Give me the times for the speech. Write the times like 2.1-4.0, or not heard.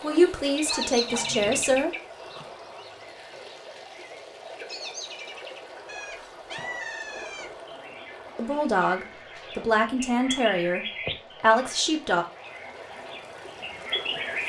0.0-1.9, 8.3-12.2.